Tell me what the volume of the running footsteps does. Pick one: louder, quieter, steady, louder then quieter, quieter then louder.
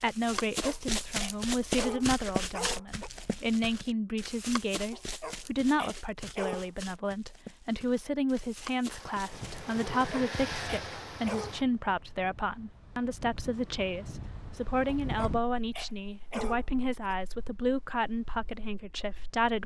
quieter.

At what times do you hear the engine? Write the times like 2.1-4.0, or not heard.
8.8-11.7.